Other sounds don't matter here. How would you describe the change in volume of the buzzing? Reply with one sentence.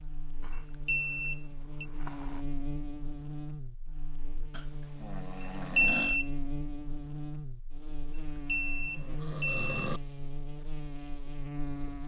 The volume of the buzzing stays about the same.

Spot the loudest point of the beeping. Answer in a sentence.
The loudest moment of the beeping is at 6 seconds.